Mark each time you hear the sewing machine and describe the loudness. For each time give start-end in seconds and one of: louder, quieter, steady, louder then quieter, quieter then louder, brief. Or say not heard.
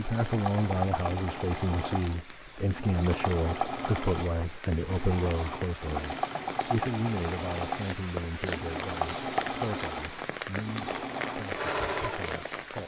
0.0-12.4 steady.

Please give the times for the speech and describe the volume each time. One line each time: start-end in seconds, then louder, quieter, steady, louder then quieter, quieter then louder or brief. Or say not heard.
0.0-12.8 quieter.